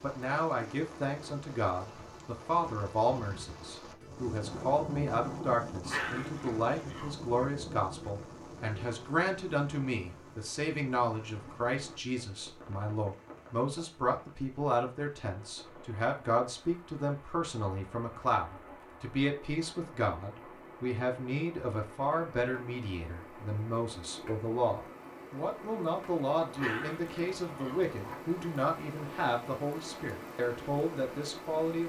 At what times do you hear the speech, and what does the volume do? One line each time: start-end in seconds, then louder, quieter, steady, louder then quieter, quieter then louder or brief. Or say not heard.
0.0-31.8 steady.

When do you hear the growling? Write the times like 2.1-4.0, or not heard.
5.8-7.3, 26.5-28.1.